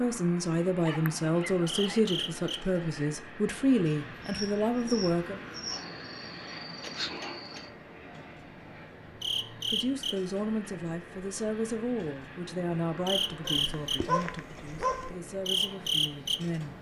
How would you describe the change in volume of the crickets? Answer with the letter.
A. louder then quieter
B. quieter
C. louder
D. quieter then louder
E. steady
C.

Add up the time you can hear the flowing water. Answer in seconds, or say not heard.
not heard.